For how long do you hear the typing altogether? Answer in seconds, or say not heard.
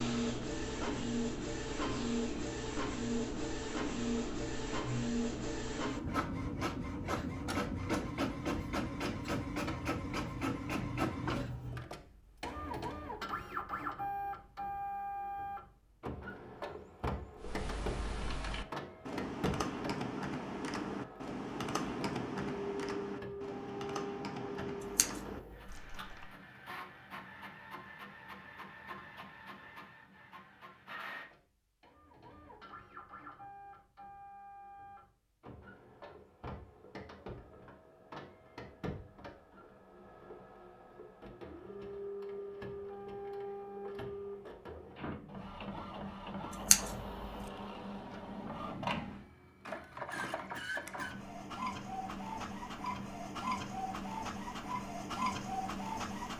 9 s.